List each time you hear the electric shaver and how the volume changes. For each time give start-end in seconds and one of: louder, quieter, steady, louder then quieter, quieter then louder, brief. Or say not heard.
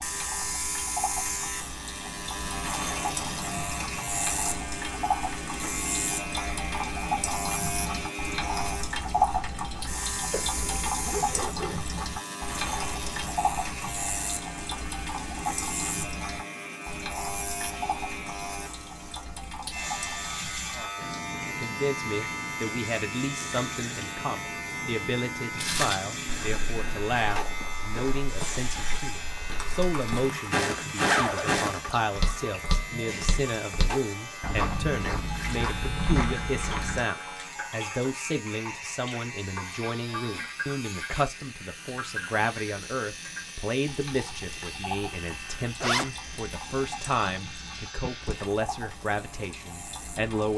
0.0-50.5 quieter.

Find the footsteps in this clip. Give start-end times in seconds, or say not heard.
25.6-37.0.